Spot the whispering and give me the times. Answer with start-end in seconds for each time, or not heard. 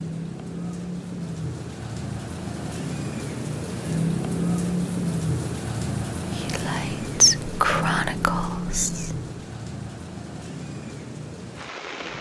6.3-9.2.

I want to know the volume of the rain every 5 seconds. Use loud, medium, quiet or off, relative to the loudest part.
loud, loud, medium.